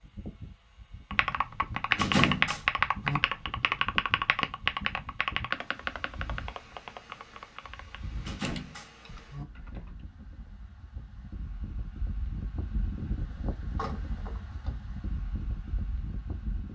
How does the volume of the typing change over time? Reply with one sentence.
The volume of the typing goes down.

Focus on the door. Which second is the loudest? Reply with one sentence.
The volume of the door peaks at 2 seconds.